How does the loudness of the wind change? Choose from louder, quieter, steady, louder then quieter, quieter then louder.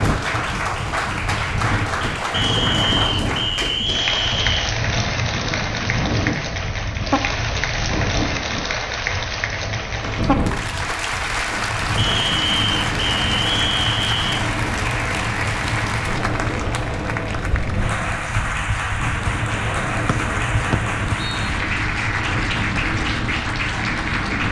steady.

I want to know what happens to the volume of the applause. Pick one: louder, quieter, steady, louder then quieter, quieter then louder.
steady.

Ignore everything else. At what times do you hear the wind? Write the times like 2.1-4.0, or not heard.
0.0-24.4.